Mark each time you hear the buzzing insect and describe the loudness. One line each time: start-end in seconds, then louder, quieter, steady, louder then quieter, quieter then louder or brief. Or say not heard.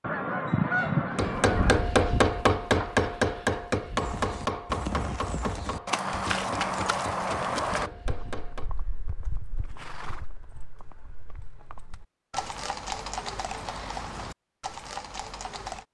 not heard.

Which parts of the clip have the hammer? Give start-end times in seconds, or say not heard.
1.1-8.7.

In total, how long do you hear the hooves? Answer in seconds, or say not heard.
12 s.